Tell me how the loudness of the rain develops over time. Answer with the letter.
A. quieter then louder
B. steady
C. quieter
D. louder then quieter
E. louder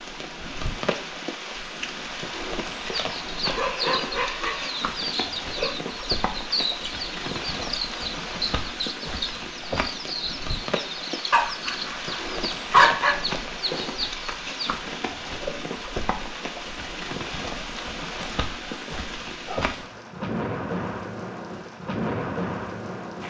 B.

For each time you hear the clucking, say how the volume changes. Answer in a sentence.
You can hear the clucking from 2.8 to 14.8 s, at a steady volume.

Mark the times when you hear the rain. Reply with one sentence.
The rain can be heard from 0.0 to 23.2 s.